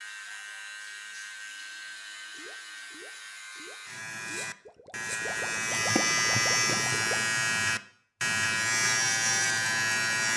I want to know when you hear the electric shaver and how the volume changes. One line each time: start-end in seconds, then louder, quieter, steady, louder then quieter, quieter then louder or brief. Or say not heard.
0.0-10.3 louder.